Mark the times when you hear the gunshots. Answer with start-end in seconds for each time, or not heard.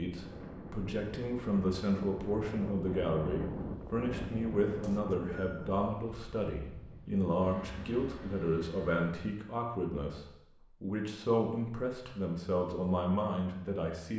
not heard.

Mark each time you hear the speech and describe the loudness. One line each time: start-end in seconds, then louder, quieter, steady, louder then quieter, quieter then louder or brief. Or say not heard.
0.0-14.1 steady.